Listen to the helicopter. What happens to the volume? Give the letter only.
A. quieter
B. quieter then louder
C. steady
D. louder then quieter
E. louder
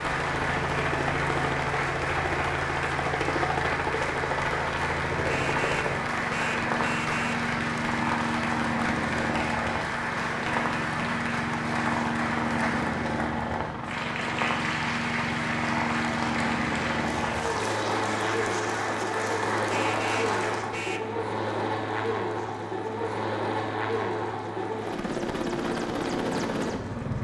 C.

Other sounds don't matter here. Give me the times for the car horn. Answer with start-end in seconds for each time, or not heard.
5.2-7.5, 19.7-21.1.